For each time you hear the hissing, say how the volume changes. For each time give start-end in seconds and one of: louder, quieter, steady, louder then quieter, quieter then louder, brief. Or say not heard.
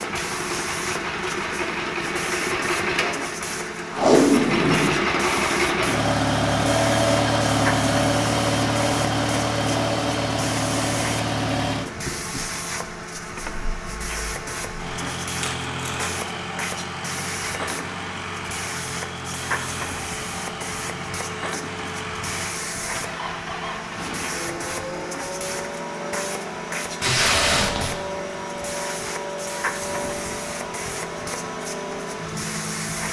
0.0-33.0 steady.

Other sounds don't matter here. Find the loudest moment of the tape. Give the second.
4 s.